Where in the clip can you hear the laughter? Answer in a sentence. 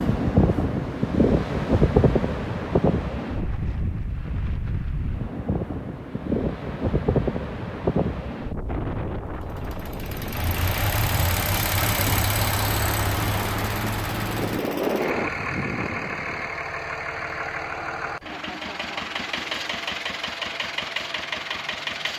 You can hear the laughter from 18.1 to 19.0 s.